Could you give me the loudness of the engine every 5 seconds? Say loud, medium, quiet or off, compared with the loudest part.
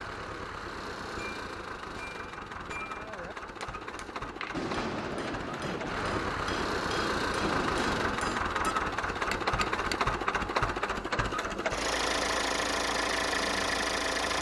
medium, loud, loud.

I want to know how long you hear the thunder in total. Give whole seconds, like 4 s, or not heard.
4 s.